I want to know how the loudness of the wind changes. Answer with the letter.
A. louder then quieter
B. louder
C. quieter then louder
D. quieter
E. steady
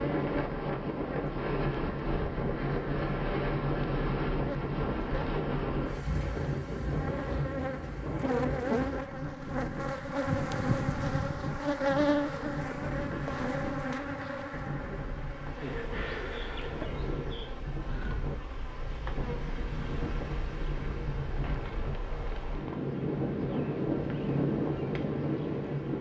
C.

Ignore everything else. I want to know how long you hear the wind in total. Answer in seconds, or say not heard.
26 s.